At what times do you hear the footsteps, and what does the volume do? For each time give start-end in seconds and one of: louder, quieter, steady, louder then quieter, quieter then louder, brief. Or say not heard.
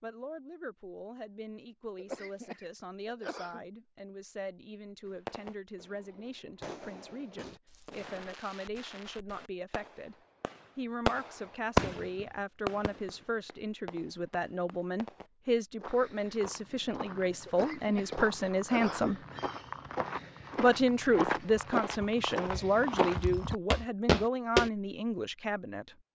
15.8-24.7 louder.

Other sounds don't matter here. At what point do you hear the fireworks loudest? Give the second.
12 s.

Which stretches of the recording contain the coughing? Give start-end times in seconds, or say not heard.
1.9-3.6, 17.4-19.2.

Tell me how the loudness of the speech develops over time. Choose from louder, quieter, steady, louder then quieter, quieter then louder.
louder.